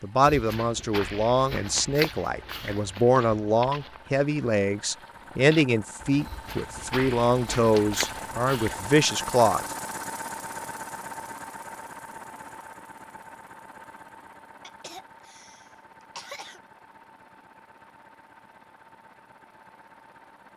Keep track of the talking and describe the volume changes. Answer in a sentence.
The volume of the talking stays about the same.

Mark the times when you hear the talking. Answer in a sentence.
You can hear the talking from 0.0 to 9.7 s.